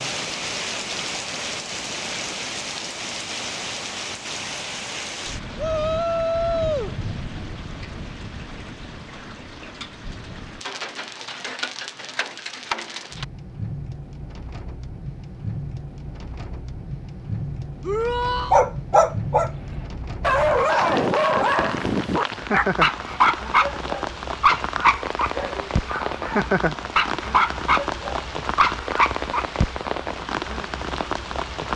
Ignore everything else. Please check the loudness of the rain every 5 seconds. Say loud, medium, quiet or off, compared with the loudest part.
loud, medium, medium, medium, loud, loud, loud.